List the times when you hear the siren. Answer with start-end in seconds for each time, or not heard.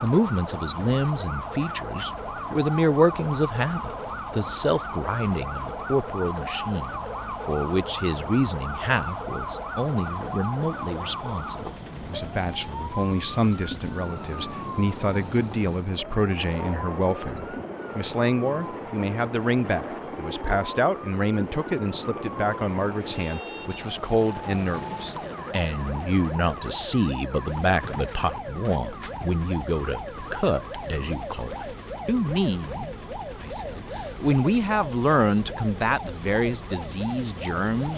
0.0-37.9.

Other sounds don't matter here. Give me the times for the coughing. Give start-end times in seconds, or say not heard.
not heard.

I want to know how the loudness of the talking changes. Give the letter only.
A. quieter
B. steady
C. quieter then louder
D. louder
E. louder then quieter
B.